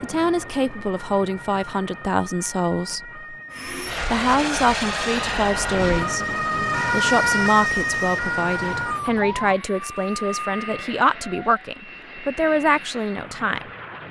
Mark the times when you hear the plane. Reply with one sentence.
You can hear the plane from 3.5 to 14.0 s.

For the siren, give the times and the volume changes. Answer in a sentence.
The siren can be heard from 0.0 to 11.4 s, getting louder then quieter.